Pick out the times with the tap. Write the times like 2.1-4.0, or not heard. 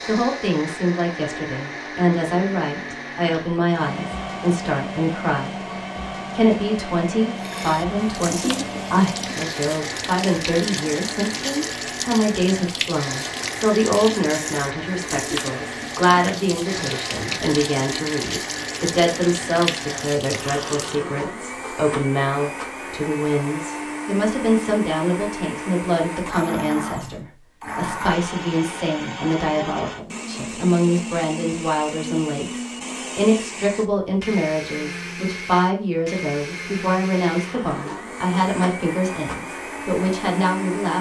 7.3-21.0.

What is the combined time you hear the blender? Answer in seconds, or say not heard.
41 s.